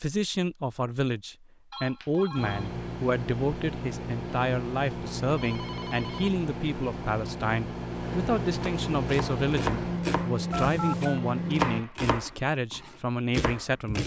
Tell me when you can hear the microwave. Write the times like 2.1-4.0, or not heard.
2.4-11.8.